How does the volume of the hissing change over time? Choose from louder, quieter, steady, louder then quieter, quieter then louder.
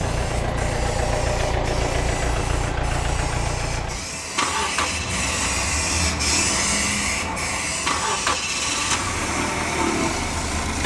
louder then quieter.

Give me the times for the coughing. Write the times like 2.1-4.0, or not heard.
not heard.